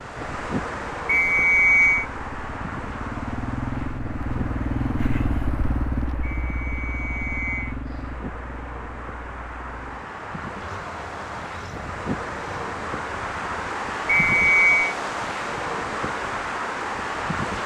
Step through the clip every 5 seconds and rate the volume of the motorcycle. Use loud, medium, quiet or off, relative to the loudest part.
loud, loud, quiet, off.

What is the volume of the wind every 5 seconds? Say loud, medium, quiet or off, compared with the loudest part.
medium, medium, loud, loud.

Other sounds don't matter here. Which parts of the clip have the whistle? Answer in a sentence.
You can hear the whistle from 1.1 to 2.0 s, from 6.2 to 7.8 s and from 14.1 to 14.9 s.